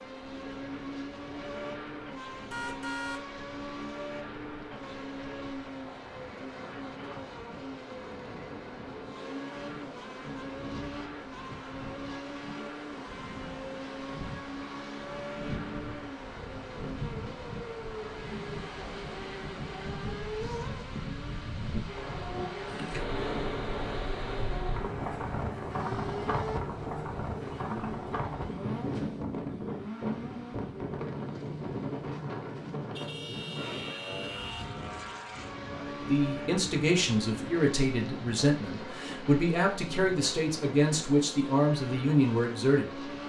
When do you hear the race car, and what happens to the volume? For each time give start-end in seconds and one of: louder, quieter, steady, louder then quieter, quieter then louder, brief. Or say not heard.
0.0-43.2 steady.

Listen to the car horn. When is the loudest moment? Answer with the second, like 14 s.
3 s.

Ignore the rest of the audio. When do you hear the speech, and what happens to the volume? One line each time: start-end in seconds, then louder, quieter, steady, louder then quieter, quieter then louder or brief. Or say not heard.
35.7-43.1 steady.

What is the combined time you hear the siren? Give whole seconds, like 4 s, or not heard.
not heard.